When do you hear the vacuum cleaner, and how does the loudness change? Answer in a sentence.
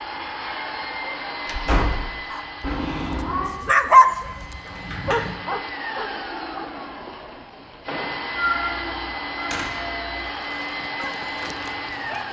You can hear the vacuum cleaner from 0.0 to 12.2 s, getting quieter then louder.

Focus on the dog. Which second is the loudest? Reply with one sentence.
The loudest moment of the dog is at 4 seconds.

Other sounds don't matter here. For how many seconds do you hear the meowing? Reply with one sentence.
The meowing can be heard for 3 seconds in total.